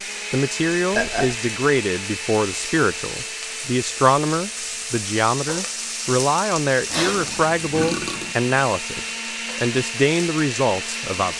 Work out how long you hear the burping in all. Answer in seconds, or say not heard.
2 s.